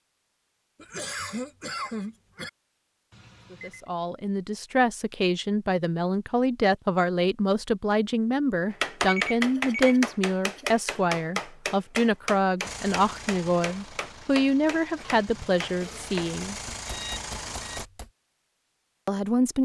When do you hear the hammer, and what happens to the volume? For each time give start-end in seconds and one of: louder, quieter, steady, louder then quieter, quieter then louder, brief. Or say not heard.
8.7-18.1 quieter.